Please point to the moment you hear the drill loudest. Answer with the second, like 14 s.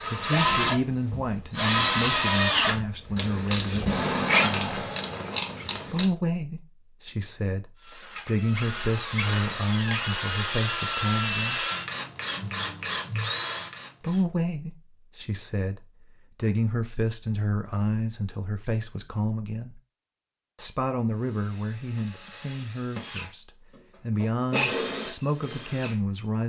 2 s.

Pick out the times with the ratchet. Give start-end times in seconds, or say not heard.
3.1-6.1.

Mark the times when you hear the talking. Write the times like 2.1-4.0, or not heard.
0.1-4.8, 5.8-11.7, 14.0-19.8, 20.6-26.4.